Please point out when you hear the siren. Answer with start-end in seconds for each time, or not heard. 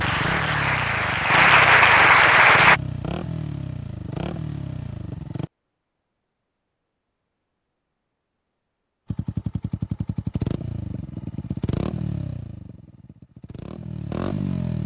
not heard.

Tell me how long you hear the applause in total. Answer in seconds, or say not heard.
3 s.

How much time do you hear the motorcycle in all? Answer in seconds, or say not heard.
11 s.